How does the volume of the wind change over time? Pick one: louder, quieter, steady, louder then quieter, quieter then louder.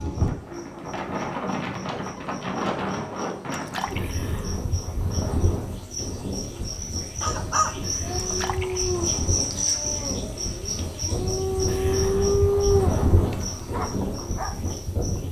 quieter then louder.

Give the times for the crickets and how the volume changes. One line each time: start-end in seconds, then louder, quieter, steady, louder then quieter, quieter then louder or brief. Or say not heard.
0.1-15.2 louder then quieter.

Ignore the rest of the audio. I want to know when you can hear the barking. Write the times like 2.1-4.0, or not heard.
7.2-14.5.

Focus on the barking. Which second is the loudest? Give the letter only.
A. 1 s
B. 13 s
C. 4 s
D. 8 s
B.